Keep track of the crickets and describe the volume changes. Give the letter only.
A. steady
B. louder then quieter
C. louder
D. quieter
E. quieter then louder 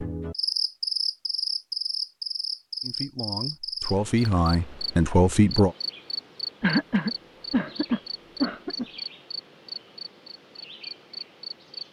D.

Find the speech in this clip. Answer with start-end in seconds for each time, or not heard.
2.8-5.8.